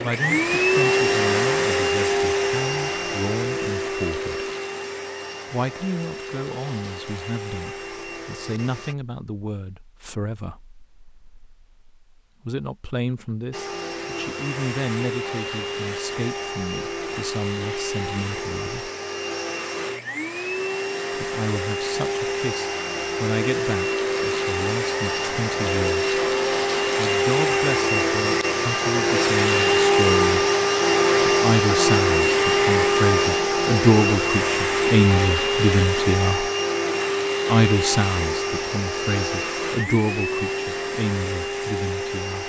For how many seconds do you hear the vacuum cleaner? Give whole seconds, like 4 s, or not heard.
38 s.